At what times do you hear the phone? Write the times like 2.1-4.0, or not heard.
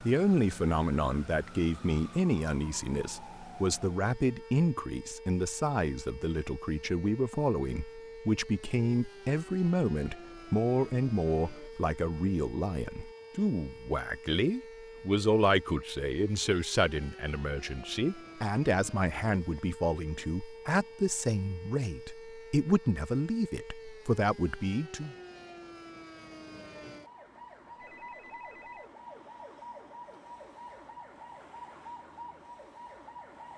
27.8-28.9.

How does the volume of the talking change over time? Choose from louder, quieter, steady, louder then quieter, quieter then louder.
steady.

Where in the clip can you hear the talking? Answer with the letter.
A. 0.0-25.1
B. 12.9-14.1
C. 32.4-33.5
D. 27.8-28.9
A.